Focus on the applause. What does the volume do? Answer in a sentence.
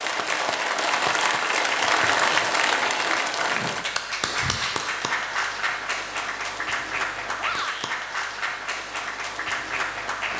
The volume of the applause goes down.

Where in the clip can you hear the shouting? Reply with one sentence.
You can hear the shouting from 7.3 to 8.0 s.